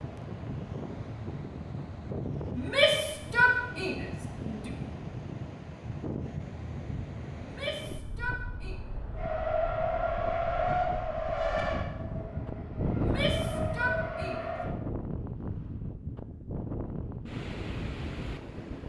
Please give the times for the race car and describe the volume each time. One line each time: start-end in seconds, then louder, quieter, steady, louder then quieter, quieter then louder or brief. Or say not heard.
9.2-14.8 quieter then louder.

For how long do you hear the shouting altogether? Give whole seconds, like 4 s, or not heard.
5 s.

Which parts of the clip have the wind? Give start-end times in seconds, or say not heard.
0.0-18.8.